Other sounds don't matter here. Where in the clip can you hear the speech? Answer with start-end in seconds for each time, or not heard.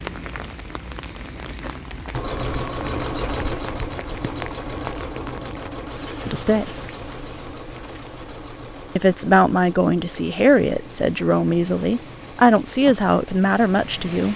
6.2-6.8, 8.9-14.3.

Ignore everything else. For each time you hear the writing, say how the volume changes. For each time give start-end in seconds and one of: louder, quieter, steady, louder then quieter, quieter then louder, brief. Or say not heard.
not heard.